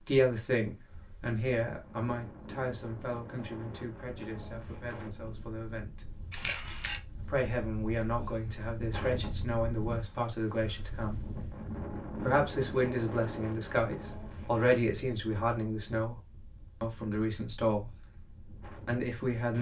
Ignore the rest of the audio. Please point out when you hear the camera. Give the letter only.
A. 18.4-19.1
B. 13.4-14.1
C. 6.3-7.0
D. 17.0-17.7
C.